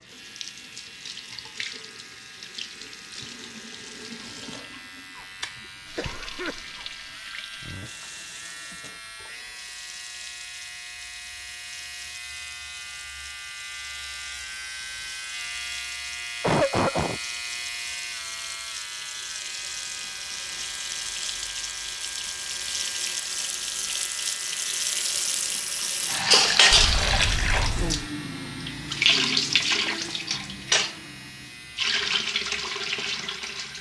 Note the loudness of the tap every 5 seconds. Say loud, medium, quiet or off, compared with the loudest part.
quiet, quiet, quiet, quiet, medium, loud, medium.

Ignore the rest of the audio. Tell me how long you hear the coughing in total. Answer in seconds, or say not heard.
3 s.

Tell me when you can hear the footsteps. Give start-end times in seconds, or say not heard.
not heard.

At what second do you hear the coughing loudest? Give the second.
17 s.